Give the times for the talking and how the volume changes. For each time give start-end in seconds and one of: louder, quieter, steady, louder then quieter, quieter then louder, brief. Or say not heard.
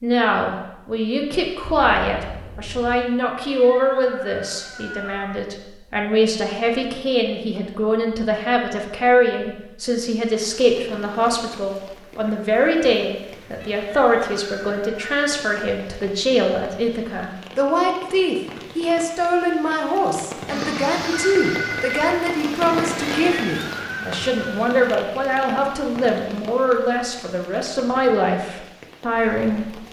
0.0-29.8 steady.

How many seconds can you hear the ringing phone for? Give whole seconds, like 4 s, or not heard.
2 s.